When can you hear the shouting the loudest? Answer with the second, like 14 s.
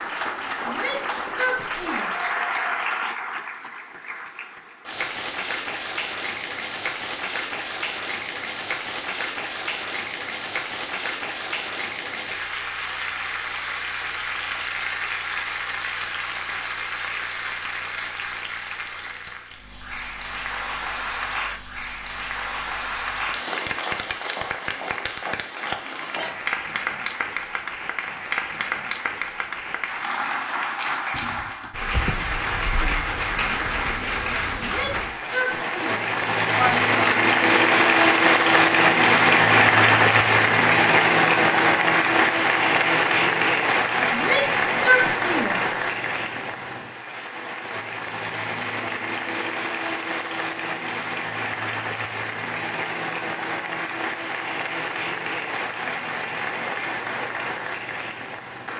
45 s.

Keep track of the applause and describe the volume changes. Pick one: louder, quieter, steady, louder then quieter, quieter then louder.
louder then quieter.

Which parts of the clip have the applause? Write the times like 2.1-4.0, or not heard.
0.0-58.7.